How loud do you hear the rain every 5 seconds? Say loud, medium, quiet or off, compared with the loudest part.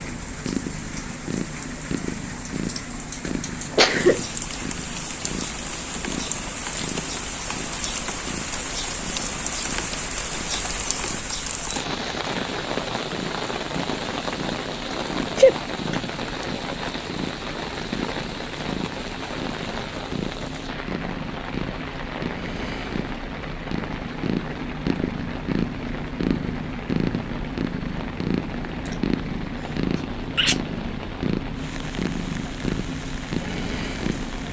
medium, loud, loud, loud, medium, medium, medium.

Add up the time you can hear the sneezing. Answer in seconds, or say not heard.
2 s.